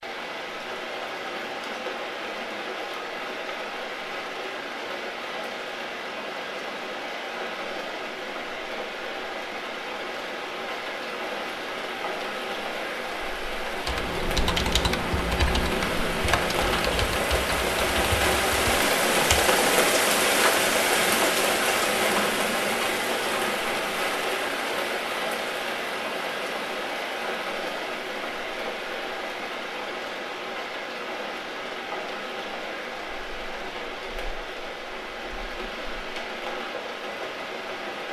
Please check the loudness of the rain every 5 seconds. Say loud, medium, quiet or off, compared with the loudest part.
medium, medium, medium, loud, loud, medium, medium, medium.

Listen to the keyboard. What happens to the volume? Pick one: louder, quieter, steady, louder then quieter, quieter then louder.
quieter.